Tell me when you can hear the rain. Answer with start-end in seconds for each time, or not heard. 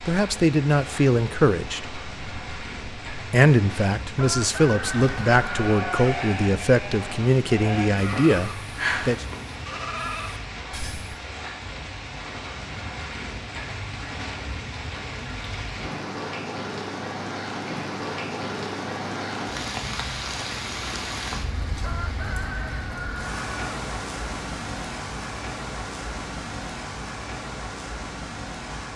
0.0-28.9.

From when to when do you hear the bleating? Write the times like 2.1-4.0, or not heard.
5.0-11.2.